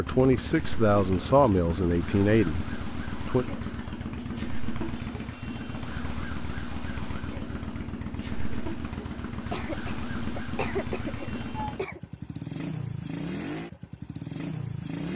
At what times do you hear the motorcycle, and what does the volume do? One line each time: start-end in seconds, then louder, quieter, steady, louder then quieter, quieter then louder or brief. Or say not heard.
0.0-15.1 steady.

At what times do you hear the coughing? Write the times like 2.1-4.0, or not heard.
9.5-12.0.